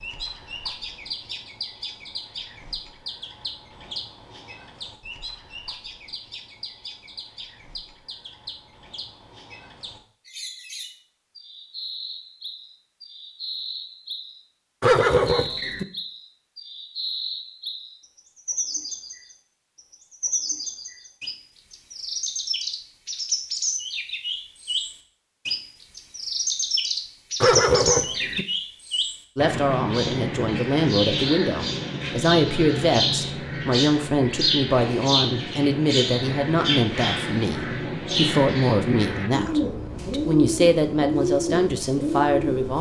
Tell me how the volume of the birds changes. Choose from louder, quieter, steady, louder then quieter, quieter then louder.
louder.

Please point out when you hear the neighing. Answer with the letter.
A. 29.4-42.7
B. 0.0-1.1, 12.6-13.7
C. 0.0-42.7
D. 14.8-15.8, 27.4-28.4
D.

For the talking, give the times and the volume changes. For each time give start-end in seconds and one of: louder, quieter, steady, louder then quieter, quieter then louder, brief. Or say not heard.
29.4-42.7 steady.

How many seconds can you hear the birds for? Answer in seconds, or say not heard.
43 s.